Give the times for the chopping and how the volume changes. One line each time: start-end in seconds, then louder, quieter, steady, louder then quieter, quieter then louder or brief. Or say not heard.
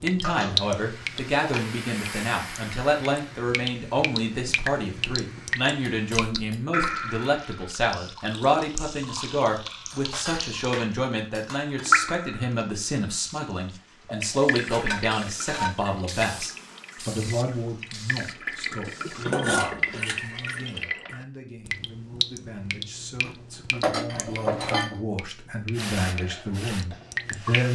not heard.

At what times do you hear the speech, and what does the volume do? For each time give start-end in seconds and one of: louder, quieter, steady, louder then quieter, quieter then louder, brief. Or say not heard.
0.0-27.7 quieter.